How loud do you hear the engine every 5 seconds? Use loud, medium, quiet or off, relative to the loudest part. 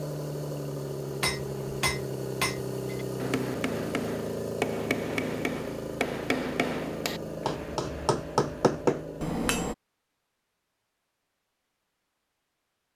loud, loud, off.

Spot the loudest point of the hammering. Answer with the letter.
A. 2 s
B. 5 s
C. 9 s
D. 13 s
C.